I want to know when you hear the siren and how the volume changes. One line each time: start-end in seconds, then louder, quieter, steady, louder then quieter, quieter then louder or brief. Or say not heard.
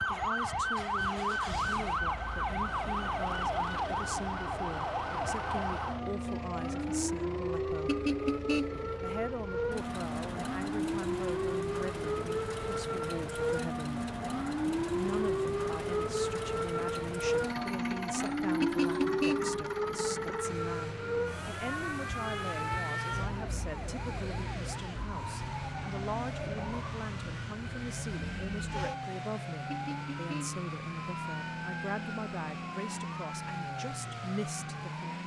0.0-35.2 quieter.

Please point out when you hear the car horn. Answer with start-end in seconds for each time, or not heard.
7.8-8.9, 18.6-19.6, 29.6-30.6.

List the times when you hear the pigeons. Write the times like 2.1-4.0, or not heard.
not heard.